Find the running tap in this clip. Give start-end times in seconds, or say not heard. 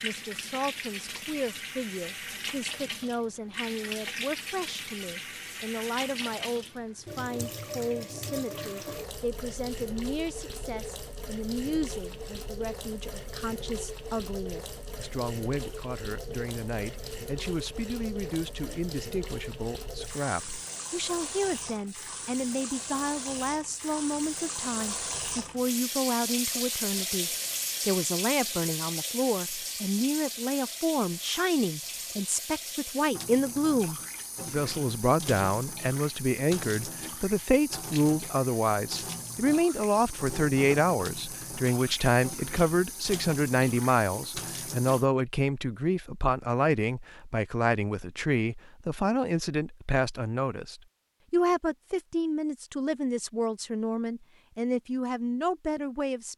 0.0-45.0.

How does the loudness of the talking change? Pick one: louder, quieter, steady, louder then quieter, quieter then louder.
louder.